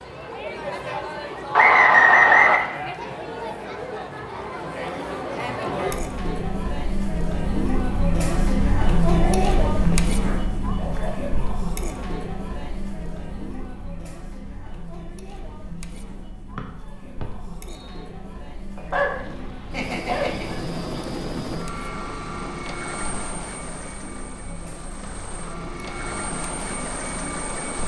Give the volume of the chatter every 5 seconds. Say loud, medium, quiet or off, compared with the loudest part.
medium, loud, medium, quiet, quiet, quiet.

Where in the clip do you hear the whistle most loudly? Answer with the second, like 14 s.
2 s.